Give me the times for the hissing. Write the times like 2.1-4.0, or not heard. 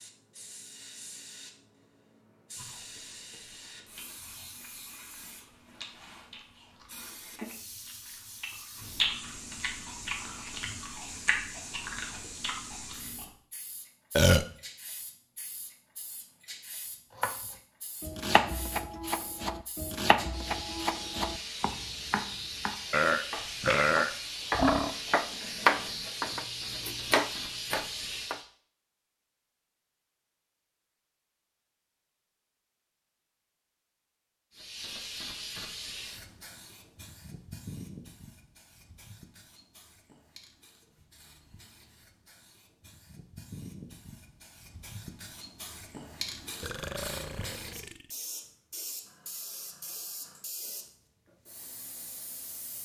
0.0-28.4, 34.5-52.8.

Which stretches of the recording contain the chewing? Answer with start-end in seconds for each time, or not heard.
2.5-13.3.